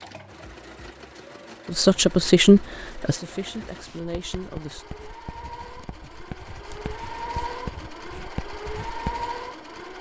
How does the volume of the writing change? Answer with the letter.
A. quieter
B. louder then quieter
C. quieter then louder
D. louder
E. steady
D.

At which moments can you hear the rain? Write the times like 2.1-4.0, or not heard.
not heard.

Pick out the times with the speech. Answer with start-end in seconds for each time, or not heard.
1.6-4.8.